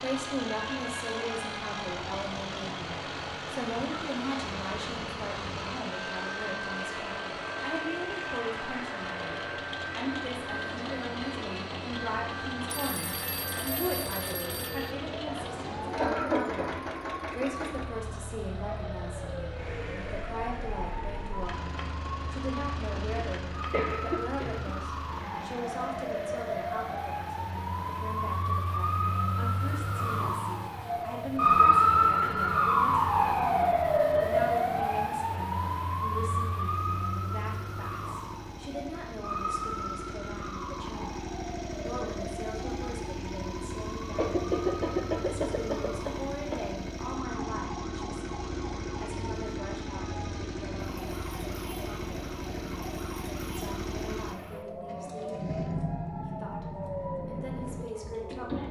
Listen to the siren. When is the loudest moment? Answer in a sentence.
The volume of the siren peaks at 32 seconds.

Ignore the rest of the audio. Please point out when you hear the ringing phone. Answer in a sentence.
The ringing phone can be heard from 12.7 to 14.9 s.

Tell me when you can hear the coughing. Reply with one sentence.
The coughing can be heard from 15.1 to 16.9 s, from 23.1 to 24.7 s and from 44.1 to 46.6 s.